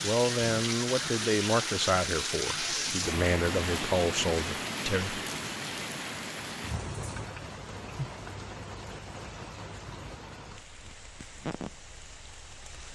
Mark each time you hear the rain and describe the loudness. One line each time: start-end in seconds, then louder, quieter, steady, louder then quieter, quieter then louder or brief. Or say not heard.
0.0-12.9 quieter.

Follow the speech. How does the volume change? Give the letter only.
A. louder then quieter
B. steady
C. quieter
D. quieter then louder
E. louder
D.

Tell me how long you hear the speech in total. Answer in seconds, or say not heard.
5 s.